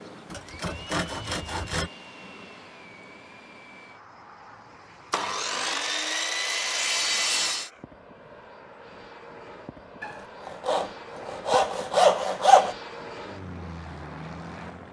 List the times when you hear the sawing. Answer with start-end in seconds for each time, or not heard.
0.3-1.9, 5.1-7.7, 10.0-12.8.